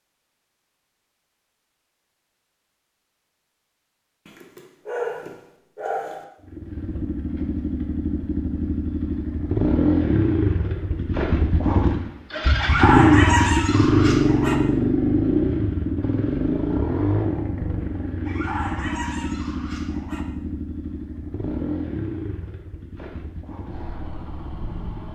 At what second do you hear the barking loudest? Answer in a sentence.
The volume of the barking peaks at 13 seconds.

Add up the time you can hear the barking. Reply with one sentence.
You can hear the barking for 6 seconds altogether.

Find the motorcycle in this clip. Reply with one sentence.
You can hear the motorcycle from 6.4 to 25.1 s.